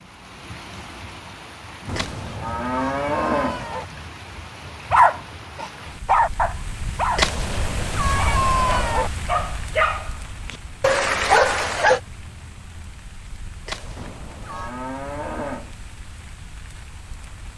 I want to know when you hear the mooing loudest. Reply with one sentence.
The loudest moment of the mooing is at 3 seconds.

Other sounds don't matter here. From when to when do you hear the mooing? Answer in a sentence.
You can hear the mooing from 1.9 to 3.6 s and from 13.9 to 15.8 s.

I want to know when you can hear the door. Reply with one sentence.
You can't hear the door here.